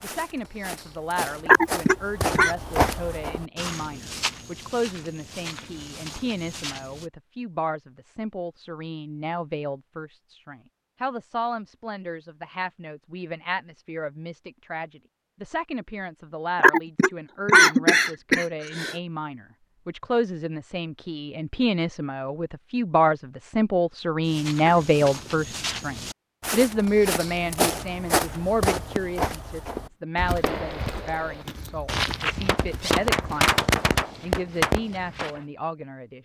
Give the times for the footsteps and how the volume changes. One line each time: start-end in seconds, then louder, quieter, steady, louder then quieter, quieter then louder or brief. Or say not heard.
0.0-7.1 louder then quieter
24.2-33.4 louder then quieter.